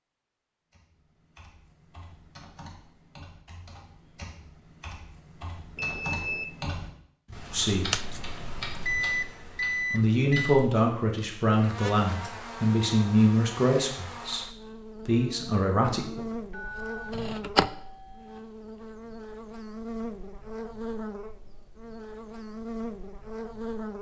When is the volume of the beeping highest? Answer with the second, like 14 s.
9 s.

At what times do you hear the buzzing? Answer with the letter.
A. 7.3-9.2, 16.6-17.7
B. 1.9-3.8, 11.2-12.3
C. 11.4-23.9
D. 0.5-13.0
C.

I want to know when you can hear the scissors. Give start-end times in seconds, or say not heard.
7.3-9.2, 16.6-17.7.